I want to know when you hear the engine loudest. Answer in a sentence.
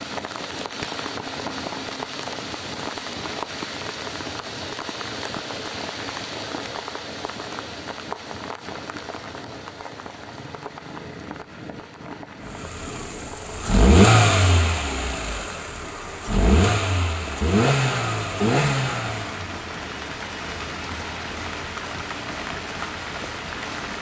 The loudest moment of the engine is at 14 seconds.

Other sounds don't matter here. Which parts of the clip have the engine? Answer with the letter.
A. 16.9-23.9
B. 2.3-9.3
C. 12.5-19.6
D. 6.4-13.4
C.